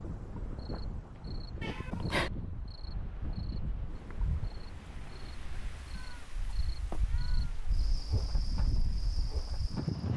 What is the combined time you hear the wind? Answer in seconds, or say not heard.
10 s.